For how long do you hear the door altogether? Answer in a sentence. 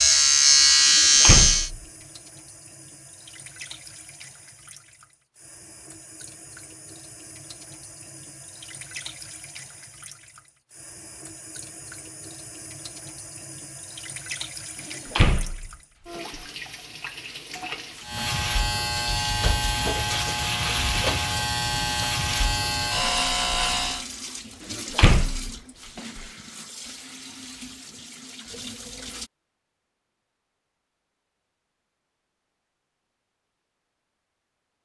You can hear the door for 4 seconds altogether.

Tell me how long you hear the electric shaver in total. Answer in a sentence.
The electric shaver can be heard for 8 seconds in total.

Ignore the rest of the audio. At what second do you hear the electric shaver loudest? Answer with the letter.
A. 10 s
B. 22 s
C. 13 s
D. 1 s
D.